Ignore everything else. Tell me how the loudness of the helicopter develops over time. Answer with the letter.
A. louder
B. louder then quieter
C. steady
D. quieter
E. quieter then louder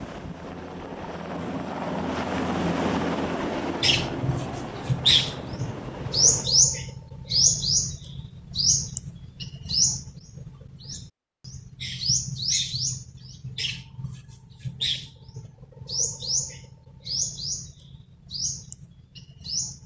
B.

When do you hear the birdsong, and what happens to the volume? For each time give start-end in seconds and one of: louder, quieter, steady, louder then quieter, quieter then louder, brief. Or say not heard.
3.8-19.8 quieter.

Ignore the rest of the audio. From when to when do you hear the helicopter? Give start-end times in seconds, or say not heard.
0.0-6.5.